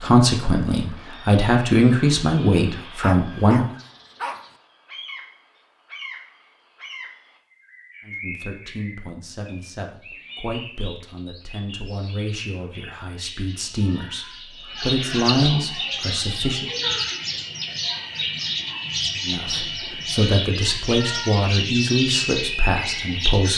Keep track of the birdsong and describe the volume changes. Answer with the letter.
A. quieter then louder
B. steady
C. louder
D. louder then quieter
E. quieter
C.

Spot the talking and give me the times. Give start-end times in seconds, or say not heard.
0.0-3.6, 8.1-16.7, 19.2-23.5.